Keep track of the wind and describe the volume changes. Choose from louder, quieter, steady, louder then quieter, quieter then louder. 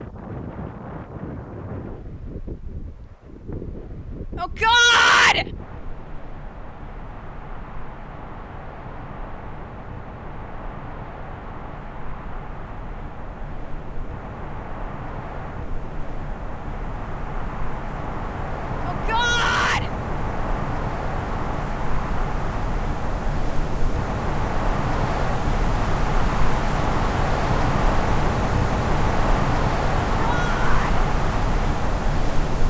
louder.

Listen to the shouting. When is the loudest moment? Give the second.
5 s.